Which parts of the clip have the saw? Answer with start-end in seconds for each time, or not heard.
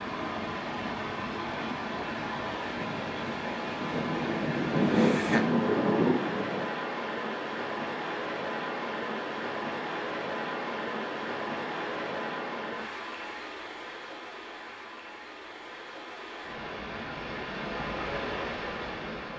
not heard.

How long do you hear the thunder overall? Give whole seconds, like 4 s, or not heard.
4 s.